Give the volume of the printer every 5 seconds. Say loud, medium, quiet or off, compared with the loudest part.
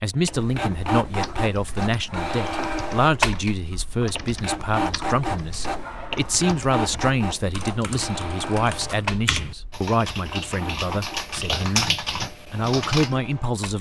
loud, loud, medium.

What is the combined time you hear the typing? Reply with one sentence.
The typing can be heard for 12 seconds in total.